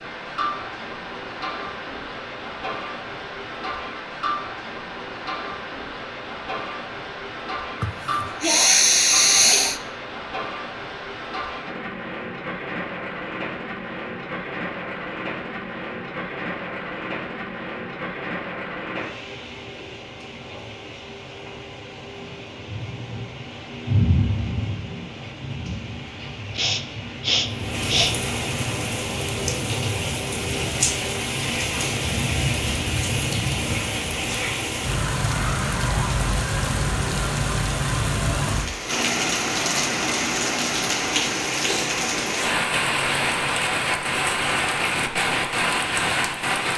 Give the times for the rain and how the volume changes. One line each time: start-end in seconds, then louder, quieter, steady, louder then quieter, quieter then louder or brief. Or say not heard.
0.0-46.7 louder.